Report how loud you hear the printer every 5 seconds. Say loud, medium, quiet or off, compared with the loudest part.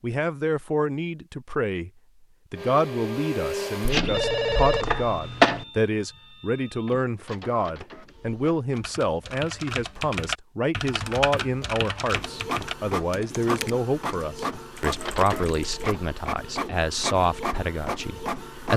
loud, quiet, loud, loud.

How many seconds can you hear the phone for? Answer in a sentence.
You can hear the phone for 2 seconds altogether.